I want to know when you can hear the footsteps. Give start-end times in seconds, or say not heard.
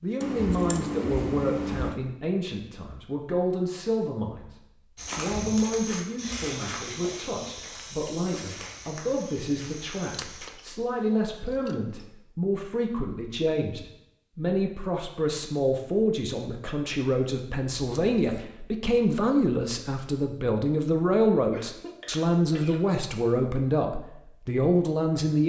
5.0-10.5.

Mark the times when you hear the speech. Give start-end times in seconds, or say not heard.
0.0-4.5, 5.2-25.4.